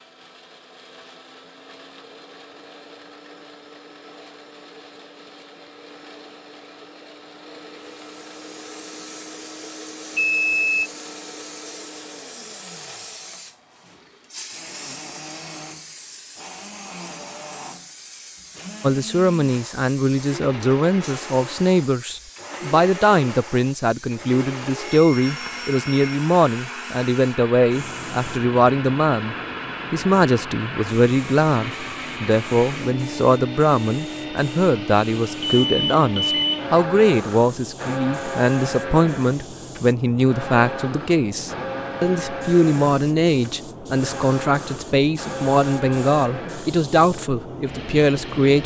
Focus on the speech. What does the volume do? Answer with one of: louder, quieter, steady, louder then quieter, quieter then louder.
steady.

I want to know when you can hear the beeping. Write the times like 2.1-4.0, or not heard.
10.2-10.9, 24.8-26.2, 35.4-36.7.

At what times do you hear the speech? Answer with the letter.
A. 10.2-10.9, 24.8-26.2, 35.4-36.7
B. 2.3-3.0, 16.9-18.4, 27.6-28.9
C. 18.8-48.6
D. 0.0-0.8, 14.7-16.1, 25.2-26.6
C.